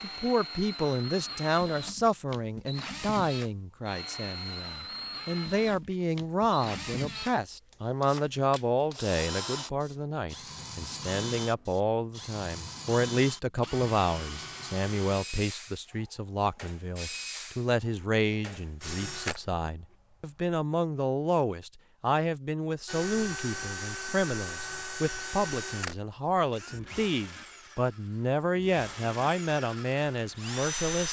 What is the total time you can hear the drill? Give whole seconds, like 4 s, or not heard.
29 s.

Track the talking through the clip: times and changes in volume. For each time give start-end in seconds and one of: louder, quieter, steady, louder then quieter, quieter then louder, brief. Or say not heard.
0.0-31.0 steady.